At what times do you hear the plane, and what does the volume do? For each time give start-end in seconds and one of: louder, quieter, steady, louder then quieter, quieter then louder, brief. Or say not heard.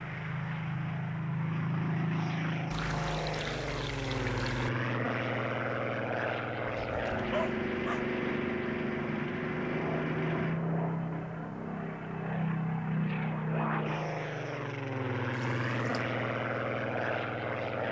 0.0-17.8 steady.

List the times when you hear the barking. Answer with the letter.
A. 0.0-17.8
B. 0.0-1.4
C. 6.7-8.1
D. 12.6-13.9
C.